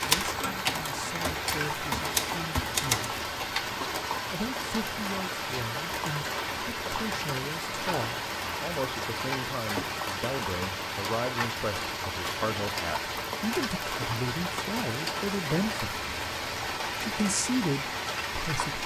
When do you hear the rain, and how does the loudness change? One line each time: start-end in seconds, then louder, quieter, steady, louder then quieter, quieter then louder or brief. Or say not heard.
0.0-18.8 steady.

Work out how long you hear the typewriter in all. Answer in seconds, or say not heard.
3 s.